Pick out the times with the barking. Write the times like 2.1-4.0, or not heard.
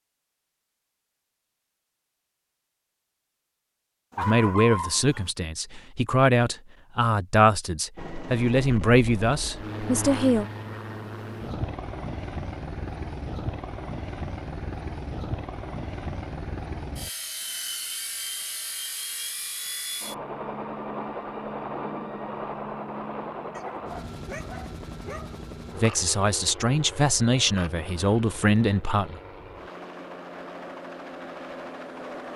4.1-5.3, 23.6-25.4.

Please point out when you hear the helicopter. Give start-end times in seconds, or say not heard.
8.0-32.3.